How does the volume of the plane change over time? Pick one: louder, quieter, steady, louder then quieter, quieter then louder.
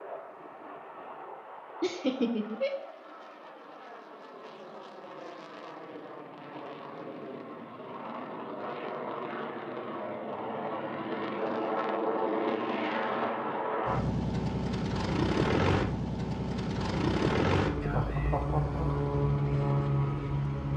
louder.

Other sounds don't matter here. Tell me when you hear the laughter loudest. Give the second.
2 s.